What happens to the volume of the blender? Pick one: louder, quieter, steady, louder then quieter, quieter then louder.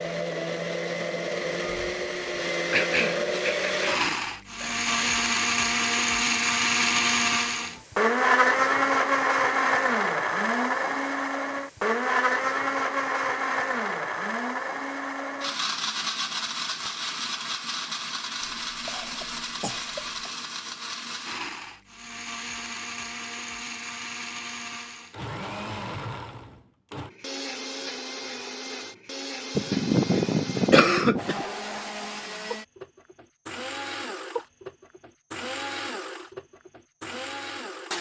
quieter.